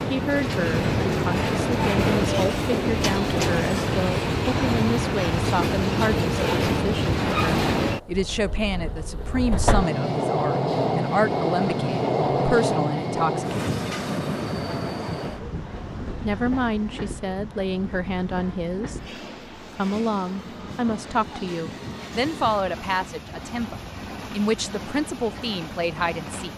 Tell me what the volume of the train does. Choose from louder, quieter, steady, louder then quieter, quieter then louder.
quieter.